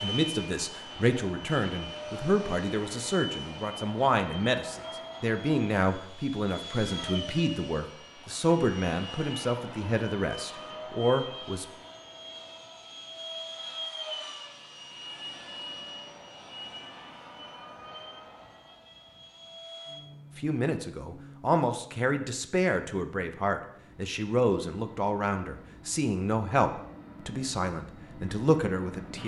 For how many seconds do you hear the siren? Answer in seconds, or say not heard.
not heard.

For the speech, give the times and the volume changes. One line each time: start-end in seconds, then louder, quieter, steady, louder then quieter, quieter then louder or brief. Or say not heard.
0.0-11.7 steady
20.4-29.2 steady.